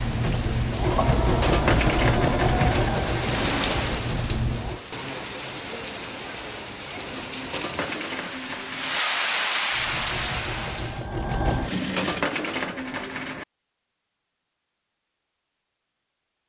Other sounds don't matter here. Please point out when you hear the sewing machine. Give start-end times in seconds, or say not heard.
0.0-4.8, 9.7-12.3.